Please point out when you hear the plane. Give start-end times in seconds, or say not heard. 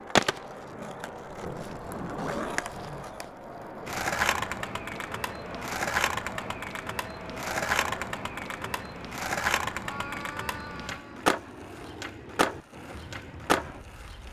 0.0-14.2.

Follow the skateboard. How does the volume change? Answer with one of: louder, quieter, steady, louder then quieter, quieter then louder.
louder.